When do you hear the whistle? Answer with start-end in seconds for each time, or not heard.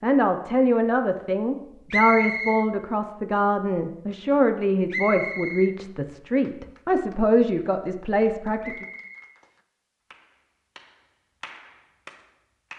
1.9-2.6, 4.9-5.8, 8.6-9.3.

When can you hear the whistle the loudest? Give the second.
2 s.